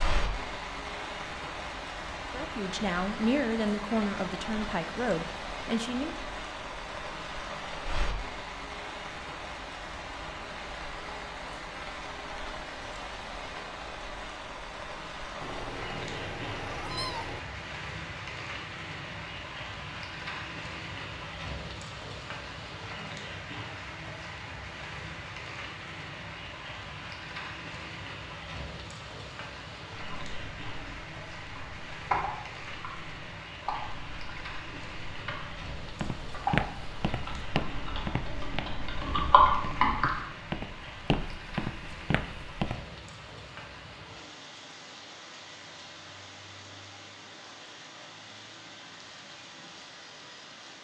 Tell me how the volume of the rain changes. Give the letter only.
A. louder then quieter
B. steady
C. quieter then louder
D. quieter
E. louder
D.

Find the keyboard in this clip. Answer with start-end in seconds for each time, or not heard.
29.9-40.1.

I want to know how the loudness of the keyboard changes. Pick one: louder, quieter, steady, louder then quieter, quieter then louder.
quieter then louder.